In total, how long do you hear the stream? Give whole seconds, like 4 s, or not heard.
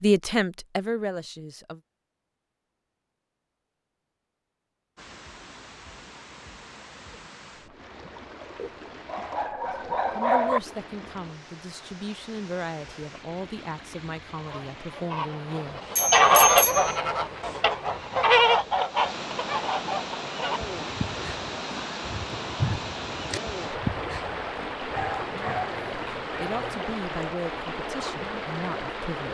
24 s.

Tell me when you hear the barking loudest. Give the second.
10 s.